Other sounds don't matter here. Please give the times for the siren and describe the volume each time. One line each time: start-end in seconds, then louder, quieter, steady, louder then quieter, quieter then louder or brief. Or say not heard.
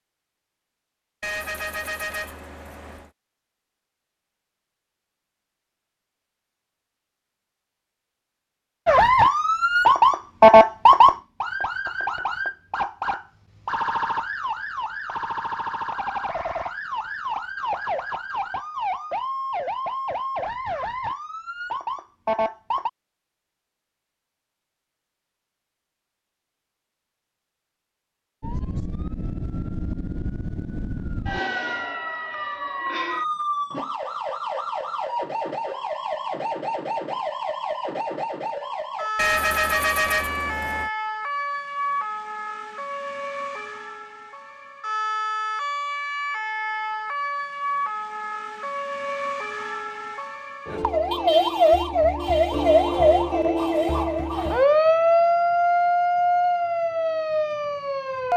8.8-22.9 quieter
28.4-58.3 louder.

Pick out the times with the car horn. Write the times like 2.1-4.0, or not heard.
1.2-3.1, 39.1-40.9.